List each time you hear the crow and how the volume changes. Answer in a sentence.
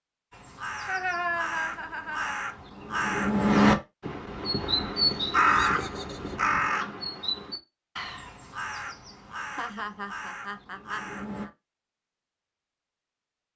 The crow can be heard from 0.3 to 11.5 s, getting louder then quieter.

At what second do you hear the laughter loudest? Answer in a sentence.
The loudest moment of the laughter is at 1 second.